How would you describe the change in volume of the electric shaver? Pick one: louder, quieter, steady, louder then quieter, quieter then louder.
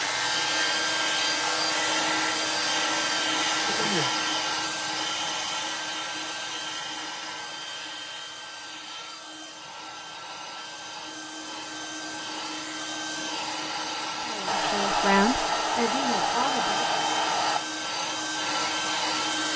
steady.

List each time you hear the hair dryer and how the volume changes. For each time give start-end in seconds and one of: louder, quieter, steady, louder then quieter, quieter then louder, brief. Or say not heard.
0.0-19.5 quieter then louder.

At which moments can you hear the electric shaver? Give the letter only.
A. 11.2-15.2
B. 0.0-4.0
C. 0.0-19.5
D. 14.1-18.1
B.